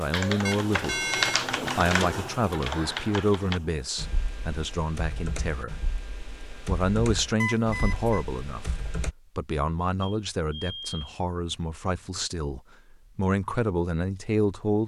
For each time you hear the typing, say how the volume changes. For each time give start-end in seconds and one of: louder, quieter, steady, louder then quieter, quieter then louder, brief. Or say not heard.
0.1-9.2 quieter.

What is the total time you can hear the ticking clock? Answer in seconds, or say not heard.
not heard.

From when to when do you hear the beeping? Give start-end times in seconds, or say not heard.
0.5-1.4, 7.4-8.2, 10.0-11.0.